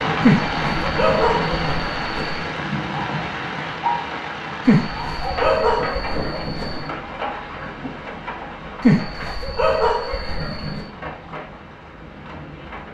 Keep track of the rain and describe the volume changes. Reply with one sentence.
The volume of the rain goes down.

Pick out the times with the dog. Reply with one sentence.
The dog can be heard from 0.2 to 2.5 s, from 4.7 to 6.8 s and from 8.8 to 10.8 s.